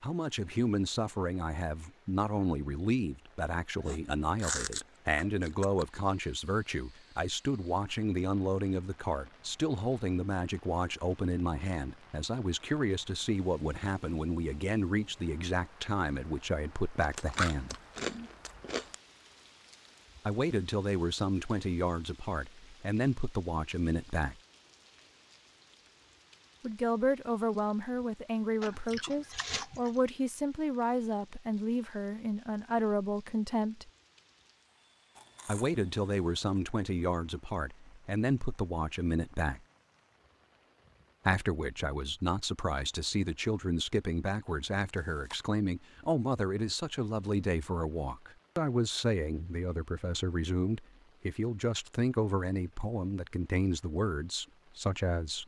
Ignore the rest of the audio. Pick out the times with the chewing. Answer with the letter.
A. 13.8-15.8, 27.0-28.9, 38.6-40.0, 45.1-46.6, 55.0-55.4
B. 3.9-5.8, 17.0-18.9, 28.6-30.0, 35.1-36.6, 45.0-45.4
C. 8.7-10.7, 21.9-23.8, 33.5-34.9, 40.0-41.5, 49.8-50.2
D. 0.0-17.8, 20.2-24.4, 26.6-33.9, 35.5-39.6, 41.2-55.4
B.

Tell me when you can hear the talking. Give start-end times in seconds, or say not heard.
0.0-17.8, 20.2-24.4, 26.6-33.9, 35.5-39.6, 41.2-55.4.